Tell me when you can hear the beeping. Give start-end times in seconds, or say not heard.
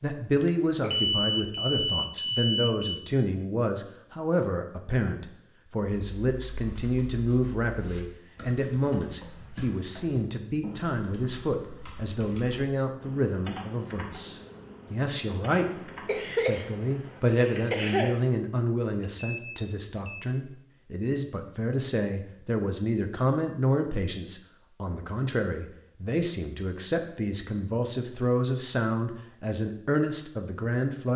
0.4-3.0, 19.1-20.3.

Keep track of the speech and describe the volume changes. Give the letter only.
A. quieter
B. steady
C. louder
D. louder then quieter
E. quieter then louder
B.